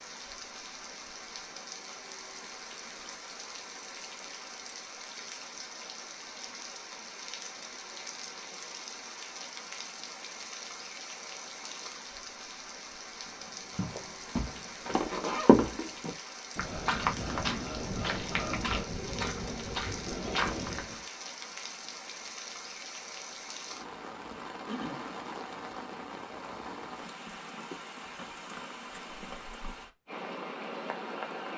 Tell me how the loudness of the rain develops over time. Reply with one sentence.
The volume of the rain stays about the same.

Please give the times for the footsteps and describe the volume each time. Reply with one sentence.
The footsteps can be heard from 13.7 to 21.0 s, getting louder then quieter.